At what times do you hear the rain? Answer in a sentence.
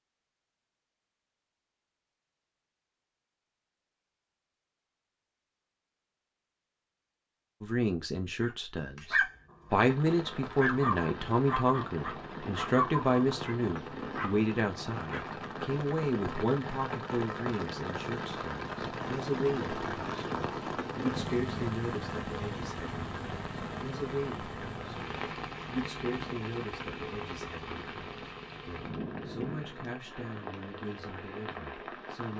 The rain can be heard from 9.7 to 32.3 s.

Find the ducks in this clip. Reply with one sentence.
You can't hear the ducks here.